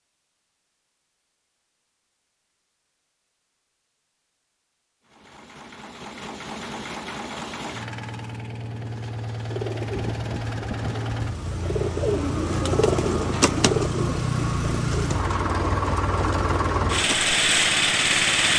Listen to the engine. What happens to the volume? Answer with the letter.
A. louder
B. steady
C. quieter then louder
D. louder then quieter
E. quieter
A.